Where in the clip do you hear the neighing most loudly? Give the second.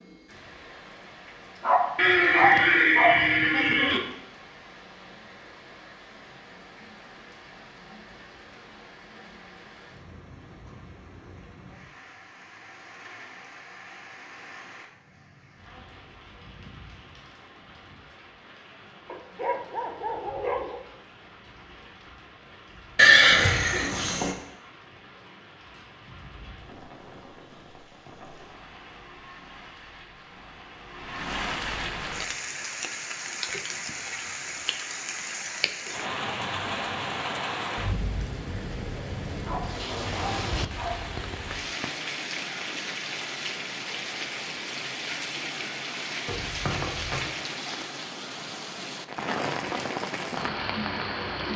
23 s.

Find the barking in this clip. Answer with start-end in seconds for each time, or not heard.
1.6-3.2, 19.1-20.9, 39.5-41.0.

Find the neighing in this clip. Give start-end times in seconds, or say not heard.
1.9-4.0, 22.9-24.4, 46.2-47.2.